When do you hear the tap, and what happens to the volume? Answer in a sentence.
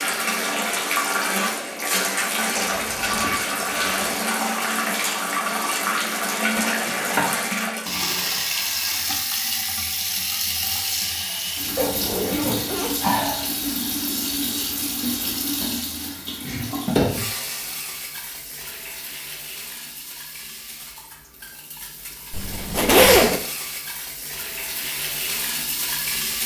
The tap can be heard from 0.0 to 26.4 s, getting quieter.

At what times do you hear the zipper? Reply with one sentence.
The zipper can be heard from 2.5 to 4.2 s, from 11.8 to 12.9 s and from 22.3 to 23.4 s.